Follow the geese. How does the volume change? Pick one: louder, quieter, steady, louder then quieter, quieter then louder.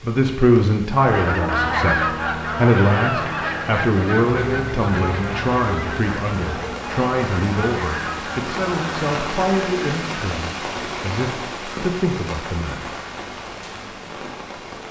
quieter.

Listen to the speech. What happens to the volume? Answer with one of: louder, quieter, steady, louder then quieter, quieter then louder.
quieter.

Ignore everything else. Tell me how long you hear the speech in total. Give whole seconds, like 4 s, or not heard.
13 s.